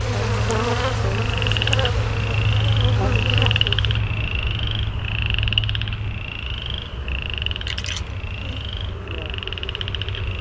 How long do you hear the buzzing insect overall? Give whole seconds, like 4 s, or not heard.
10 s.